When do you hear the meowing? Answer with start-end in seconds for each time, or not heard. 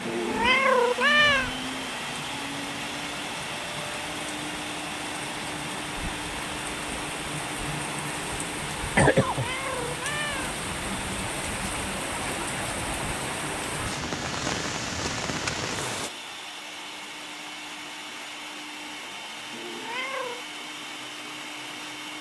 0.1-1.5, 9.1-10.7, 19.5-20.4.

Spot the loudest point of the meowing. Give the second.
1 s.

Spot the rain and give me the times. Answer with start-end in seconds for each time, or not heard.
0.0-16.1.